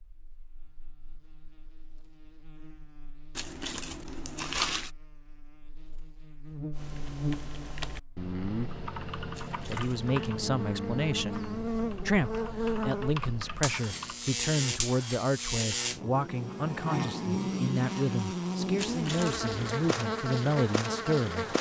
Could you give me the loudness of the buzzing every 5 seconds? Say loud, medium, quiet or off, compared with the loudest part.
quiet, medium, loud, loud, loud.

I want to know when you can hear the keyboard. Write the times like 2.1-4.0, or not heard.
6.7-14.2.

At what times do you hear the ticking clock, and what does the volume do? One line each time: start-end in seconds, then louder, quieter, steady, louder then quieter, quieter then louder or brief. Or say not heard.
not heard.